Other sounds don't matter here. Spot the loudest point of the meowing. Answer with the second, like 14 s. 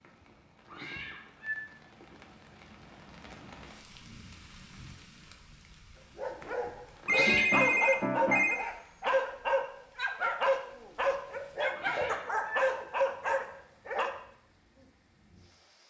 7 s.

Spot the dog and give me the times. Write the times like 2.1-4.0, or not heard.
6.0-14.1.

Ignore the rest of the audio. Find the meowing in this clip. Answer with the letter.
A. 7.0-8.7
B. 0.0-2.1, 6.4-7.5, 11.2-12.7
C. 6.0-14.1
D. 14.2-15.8
B.